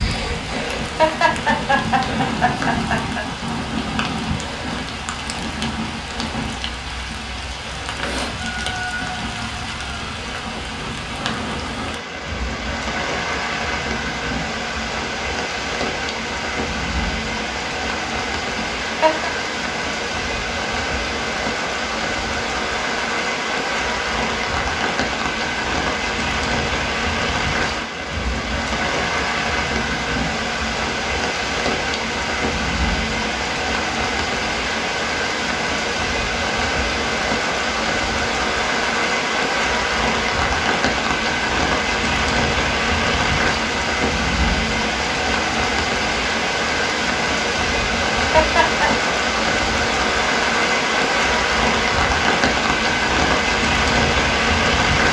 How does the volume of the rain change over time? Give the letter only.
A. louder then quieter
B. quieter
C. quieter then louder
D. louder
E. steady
D.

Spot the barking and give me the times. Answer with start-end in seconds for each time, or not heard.
not heard.